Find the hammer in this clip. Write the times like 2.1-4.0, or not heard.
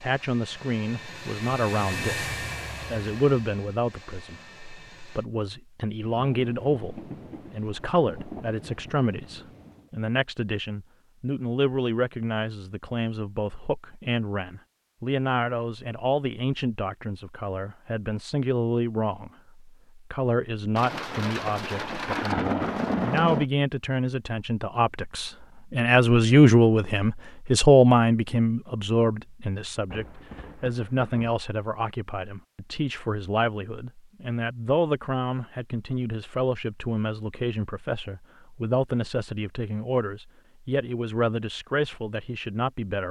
not heard.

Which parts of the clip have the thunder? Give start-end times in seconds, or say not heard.
6.1-9.9, 20.8-23.4, 29.9-31.4.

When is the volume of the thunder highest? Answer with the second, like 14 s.
22 s.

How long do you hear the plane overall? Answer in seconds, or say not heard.
5 s.